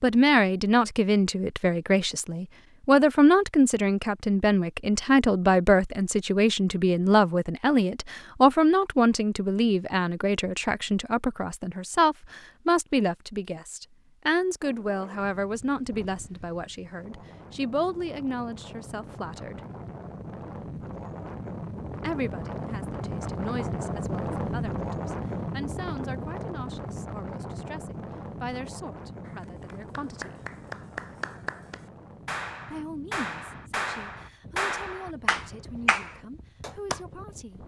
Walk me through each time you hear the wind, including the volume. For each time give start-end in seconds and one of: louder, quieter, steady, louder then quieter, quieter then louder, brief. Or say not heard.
14.6-37.6 louder then quieter.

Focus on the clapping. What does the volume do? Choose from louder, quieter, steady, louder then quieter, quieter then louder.
louder.